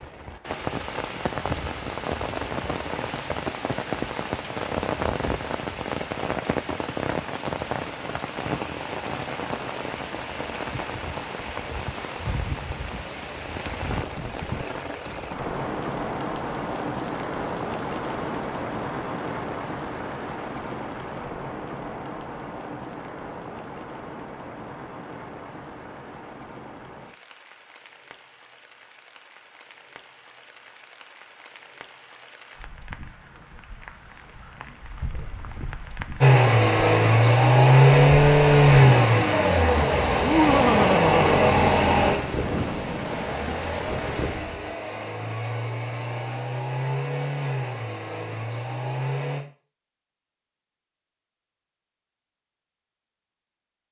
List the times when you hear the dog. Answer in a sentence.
The dog can't be heard in this clip.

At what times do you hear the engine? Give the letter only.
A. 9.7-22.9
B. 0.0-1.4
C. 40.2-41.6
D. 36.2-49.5
D.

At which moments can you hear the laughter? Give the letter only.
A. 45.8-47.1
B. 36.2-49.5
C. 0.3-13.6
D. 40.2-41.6
D.